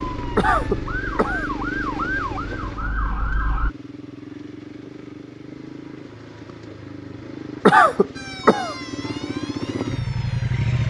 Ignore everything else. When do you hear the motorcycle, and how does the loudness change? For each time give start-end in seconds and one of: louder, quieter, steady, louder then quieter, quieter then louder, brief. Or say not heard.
0.0-10.8 quieter then louder.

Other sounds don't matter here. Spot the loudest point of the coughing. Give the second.
8 s.